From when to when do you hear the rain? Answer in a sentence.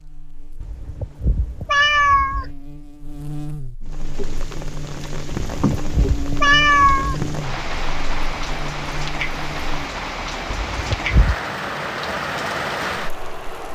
The rain can be heard from 3.8 to 13.7 s.